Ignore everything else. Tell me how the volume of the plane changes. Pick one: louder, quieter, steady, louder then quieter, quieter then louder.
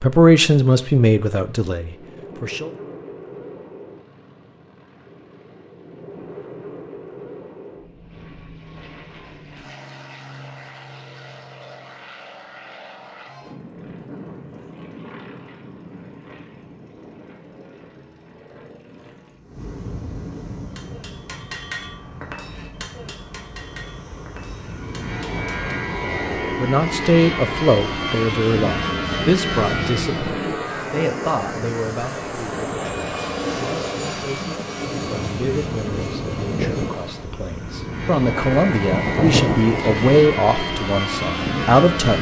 louder.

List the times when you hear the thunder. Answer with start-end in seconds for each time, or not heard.
38.3-40.1.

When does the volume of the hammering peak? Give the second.
22 s.